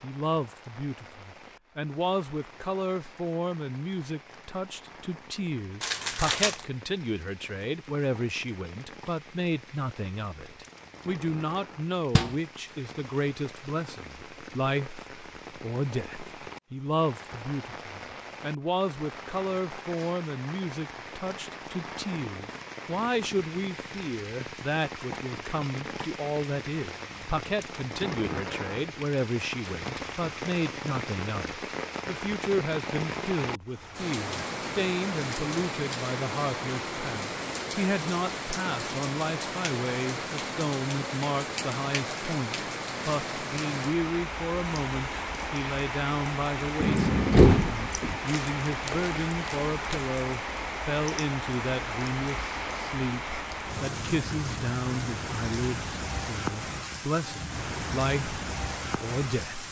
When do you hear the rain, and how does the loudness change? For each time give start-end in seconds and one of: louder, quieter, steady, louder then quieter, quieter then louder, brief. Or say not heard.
0.0-59.6 louder.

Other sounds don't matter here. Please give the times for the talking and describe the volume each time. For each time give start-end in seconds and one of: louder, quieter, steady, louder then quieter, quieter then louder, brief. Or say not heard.
0.0-59.6 steady.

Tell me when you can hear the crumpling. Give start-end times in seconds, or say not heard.
5.8-6.7, 48.2-50.0.